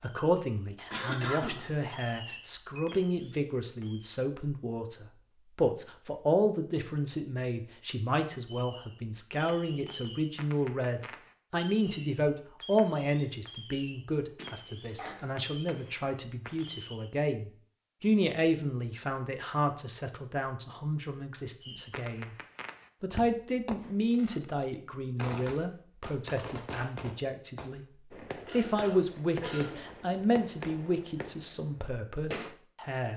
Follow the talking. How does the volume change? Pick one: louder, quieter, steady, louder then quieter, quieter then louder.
steady.